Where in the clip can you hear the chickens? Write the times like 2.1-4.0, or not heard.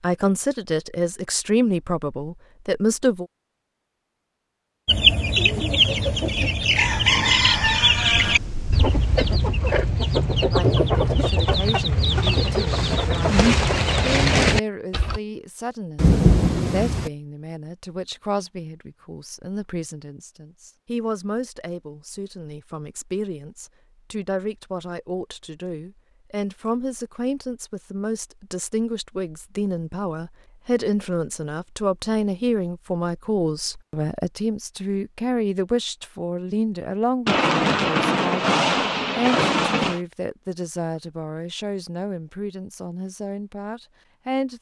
4.8-15.2.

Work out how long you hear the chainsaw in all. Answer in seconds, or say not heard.
not heard.